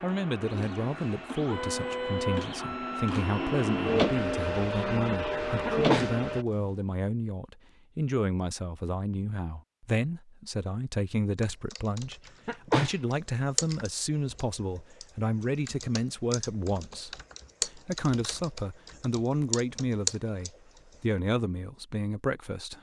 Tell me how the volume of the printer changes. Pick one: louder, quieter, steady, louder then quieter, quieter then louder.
louder.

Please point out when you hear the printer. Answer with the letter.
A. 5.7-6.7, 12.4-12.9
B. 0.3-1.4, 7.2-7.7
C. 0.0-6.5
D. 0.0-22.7
C.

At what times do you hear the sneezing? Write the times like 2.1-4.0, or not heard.
5.7-6.7, 12.4-12.9.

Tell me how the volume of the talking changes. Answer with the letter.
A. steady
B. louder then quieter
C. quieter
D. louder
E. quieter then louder
A.